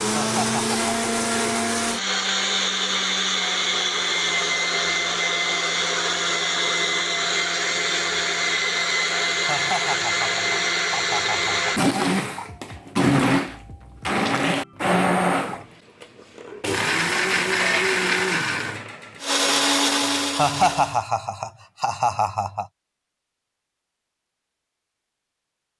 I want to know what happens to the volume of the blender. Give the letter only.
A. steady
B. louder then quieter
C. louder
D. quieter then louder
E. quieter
A.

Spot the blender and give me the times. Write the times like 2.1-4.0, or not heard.
0.0-21.0.